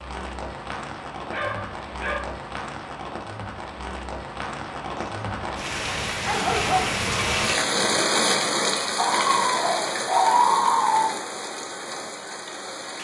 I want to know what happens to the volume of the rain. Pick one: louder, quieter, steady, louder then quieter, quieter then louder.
louder then quieter.